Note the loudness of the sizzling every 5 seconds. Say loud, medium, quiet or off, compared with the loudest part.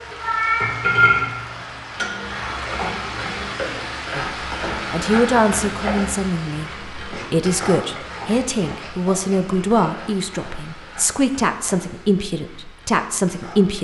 loud, medium, quiet.